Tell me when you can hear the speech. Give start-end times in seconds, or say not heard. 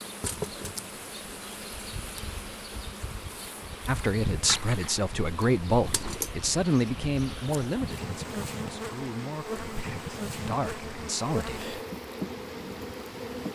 3.9-11.8.